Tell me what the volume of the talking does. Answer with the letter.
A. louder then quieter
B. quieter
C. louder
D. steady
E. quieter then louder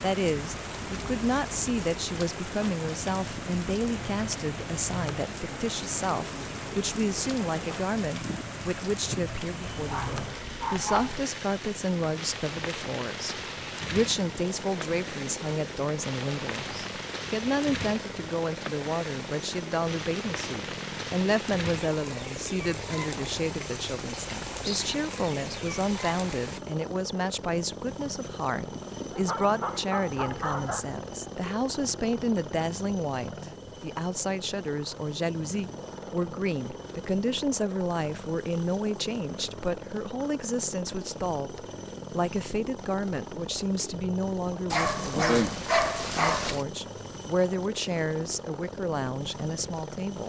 D.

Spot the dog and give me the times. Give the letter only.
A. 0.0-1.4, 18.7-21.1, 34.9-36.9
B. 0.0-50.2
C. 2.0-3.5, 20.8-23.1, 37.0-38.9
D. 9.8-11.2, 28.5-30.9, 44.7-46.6
D.